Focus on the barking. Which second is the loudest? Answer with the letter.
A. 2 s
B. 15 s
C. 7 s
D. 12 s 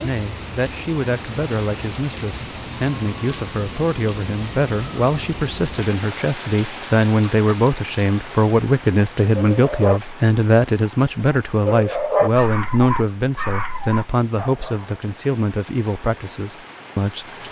D.